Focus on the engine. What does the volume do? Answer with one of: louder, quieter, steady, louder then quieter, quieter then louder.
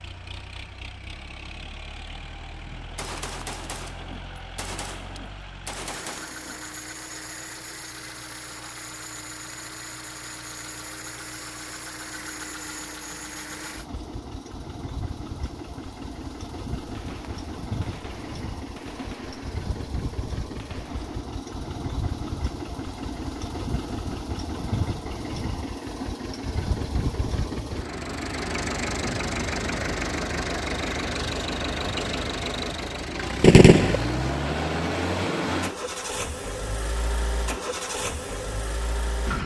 louder.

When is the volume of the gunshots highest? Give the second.
34 s.